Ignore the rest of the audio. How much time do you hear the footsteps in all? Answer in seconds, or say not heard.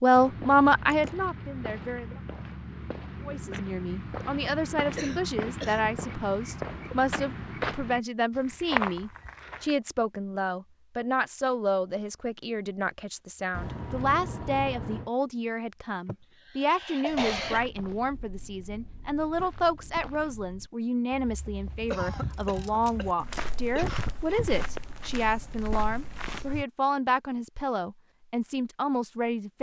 19 s.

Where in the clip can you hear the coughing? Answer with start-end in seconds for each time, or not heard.
5.0-5.9, 16.1-17.6, 21.9-24.6.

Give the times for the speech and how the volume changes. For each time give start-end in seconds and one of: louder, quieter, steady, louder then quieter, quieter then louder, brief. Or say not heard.
0.0-2.2 brief
3.2-29.5 steady.